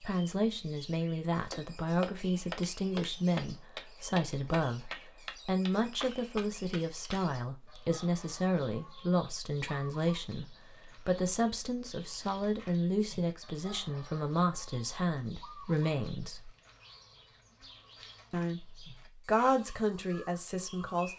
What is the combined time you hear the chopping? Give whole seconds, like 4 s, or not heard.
6 s.